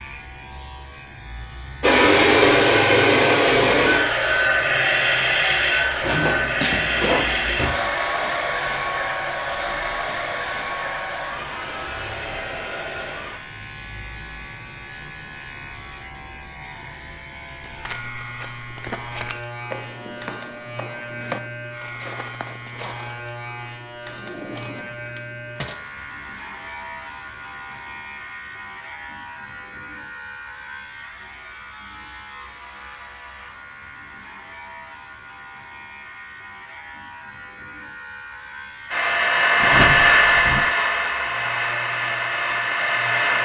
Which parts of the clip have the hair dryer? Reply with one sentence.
You can hear the hair dryer from 1.8 to 13.4 s and from 38.9 to 43.4 s.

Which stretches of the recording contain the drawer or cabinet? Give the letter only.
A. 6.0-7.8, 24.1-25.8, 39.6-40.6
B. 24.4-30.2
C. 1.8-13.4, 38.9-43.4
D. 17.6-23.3
A.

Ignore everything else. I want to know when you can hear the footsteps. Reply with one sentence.
The footsteps can be heard from 17.6 to 23.3 s.